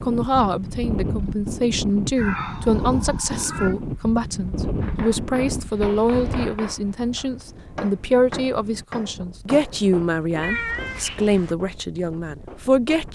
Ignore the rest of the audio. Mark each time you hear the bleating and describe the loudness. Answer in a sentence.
You can't hear the bleating here.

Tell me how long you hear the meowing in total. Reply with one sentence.
You can hear the meowing for 3 seconds altogether.